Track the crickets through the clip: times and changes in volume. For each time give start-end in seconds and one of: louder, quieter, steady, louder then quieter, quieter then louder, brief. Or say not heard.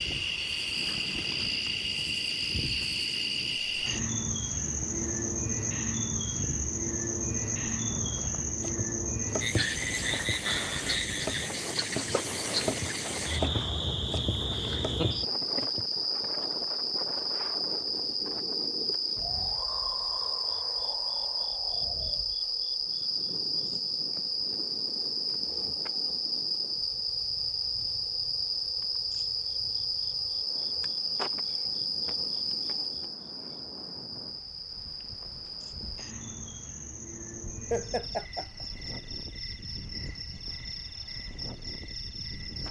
0.0-42.6 quieter.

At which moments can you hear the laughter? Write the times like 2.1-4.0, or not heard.
14.5-15.7, 37.7-38.6.